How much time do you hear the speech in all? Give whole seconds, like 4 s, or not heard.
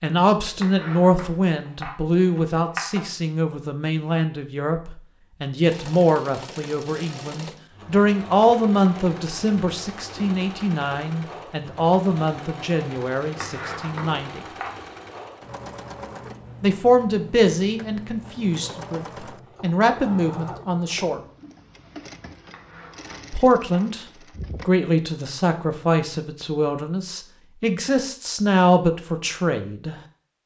25 s.